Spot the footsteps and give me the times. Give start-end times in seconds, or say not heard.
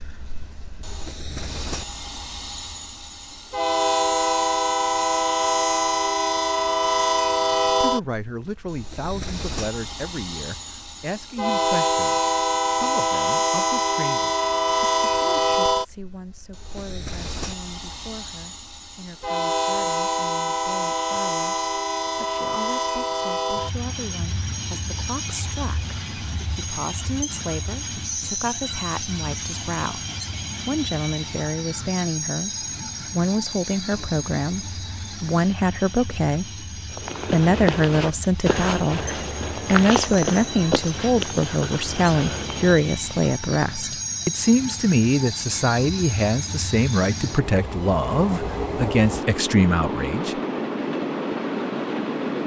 36.9-42.9.